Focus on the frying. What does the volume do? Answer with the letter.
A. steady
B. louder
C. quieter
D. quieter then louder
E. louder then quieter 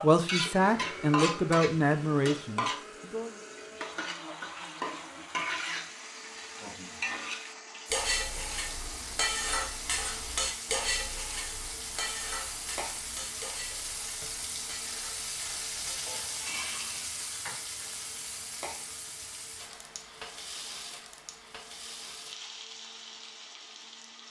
C.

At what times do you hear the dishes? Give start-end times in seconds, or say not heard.
7.9-17.6.